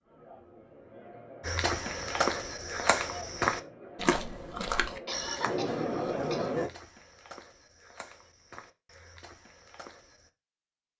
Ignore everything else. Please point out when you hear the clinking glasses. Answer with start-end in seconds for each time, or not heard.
not heard.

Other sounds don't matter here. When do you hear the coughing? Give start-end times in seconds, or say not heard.
5.0-6.5.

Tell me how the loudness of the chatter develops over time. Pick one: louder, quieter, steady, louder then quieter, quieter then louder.
louder.